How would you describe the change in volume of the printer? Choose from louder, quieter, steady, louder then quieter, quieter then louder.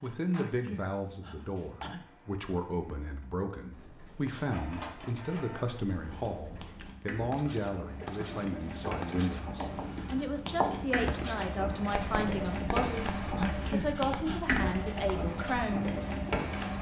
louder.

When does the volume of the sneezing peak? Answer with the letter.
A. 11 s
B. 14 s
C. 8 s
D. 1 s
B.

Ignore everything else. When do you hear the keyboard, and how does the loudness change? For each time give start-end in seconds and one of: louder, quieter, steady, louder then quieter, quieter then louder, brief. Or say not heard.
not heard.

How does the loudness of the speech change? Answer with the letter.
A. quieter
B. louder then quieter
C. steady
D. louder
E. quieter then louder
C.